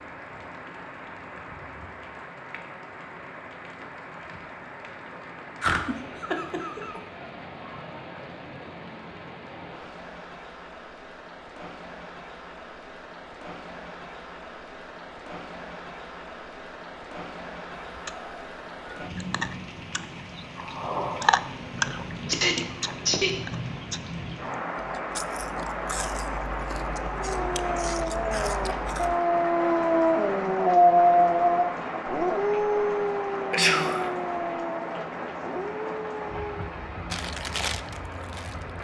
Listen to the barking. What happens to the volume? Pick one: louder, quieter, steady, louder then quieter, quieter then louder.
louder then quieter.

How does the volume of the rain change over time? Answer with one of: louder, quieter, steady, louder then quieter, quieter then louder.
louder.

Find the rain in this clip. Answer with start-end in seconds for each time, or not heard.
0.0-38.7.